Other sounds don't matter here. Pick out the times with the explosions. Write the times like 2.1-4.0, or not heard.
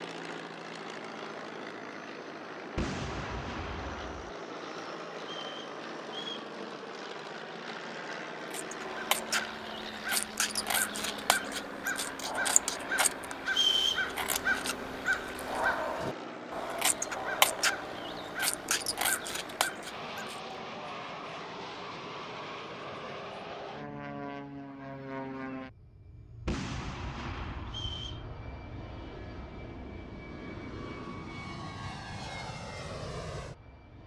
2.8-4.3, 26.4-28.0.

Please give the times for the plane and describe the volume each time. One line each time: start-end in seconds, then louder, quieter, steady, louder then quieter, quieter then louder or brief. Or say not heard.
0.0-34.0 steady.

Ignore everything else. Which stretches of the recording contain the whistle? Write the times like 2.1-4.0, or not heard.
5.2-6.5, 13.4-14.1, 27.6-28.2.